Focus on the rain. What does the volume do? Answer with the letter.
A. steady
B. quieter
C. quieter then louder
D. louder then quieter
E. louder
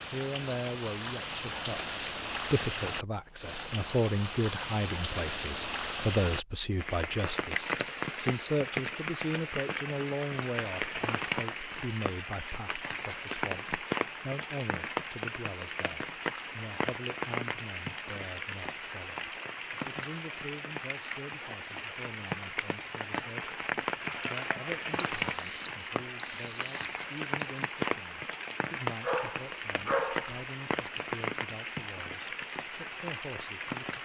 A.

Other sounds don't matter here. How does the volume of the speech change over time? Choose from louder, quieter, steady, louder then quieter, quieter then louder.
quieter.